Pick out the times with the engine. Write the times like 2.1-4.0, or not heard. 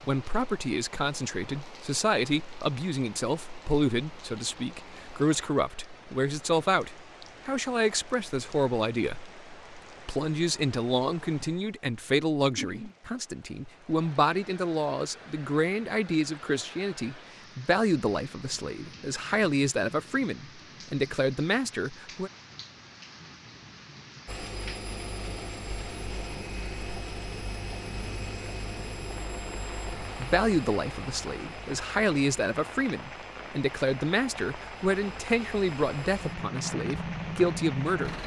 24.2-38.2.